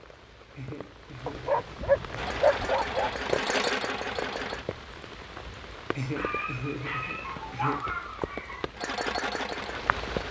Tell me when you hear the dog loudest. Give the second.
3 s.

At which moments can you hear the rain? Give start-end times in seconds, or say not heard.
0.0-10.2.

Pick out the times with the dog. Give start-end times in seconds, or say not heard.
1.2-3.1, 6.2-8.7.